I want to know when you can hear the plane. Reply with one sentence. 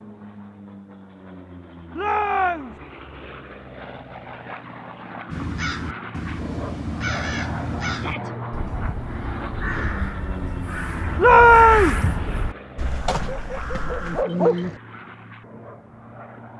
The plane can be heard from 0.0 to 16.5 s.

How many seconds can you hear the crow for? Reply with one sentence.
The crow can be heard for 9 seconds in total.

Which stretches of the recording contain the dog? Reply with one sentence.
The dog can be heard from 13.2 to 14.8 s.